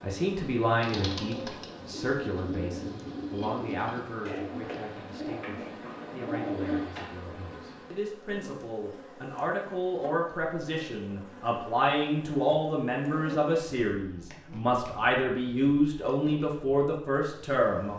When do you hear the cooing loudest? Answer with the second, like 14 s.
7 s.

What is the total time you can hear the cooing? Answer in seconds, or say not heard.
7 s.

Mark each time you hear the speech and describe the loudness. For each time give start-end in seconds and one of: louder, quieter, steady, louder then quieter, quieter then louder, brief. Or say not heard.
0.0-17.9 quieter then louder.